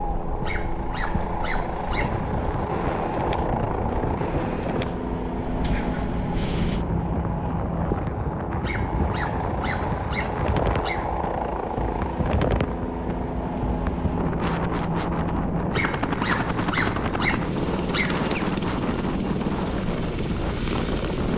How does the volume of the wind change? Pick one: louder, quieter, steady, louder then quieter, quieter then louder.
steady.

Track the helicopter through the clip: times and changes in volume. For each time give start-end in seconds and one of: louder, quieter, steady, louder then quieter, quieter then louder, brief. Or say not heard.
0.0-21.3 steady.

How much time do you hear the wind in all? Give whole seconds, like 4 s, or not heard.
21 s.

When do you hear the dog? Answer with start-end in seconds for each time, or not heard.
0.4-2.3, 8.6-11.2, 15.7-18.3.